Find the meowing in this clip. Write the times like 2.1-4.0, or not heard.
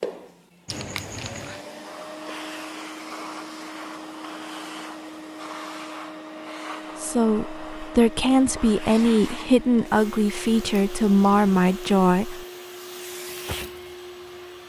0.7-1.6.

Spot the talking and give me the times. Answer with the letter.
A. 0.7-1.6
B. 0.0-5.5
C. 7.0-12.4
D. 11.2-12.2
C.